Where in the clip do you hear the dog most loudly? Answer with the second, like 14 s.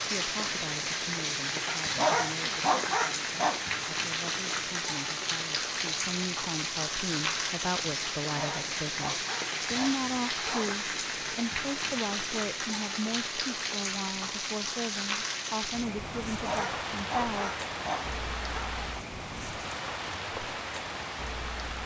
2 s.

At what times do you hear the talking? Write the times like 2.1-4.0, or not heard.
0.0-17.5.